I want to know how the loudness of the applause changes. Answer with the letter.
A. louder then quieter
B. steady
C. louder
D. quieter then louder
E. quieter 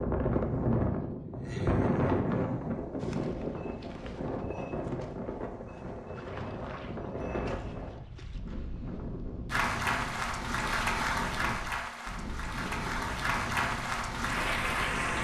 D.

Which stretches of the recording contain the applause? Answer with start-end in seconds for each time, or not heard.
9.5-15.2.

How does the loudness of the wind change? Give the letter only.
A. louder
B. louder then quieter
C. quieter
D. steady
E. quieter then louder
C.